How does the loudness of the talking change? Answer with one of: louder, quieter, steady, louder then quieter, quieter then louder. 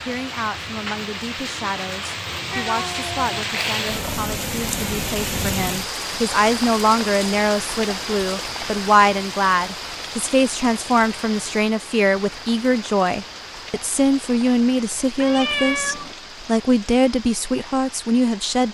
louder.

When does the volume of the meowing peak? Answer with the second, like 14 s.
16 s.